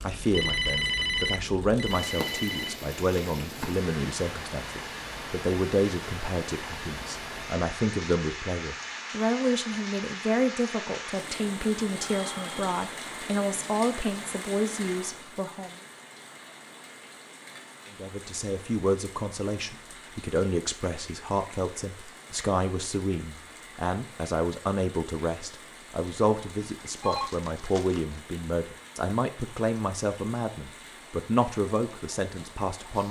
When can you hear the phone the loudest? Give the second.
1 s.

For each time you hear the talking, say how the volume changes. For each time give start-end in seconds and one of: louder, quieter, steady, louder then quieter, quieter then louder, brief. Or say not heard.
0.0-15.8 steady
17.9-33.0 steady.